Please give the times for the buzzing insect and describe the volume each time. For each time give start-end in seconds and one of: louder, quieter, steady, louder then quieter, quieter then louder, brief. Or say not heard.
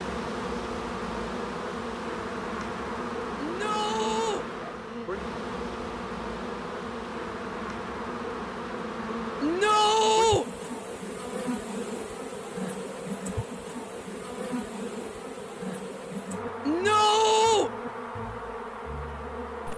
0.0-19.7 steady.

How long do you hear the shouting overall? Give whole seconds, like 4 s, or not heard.
3 s.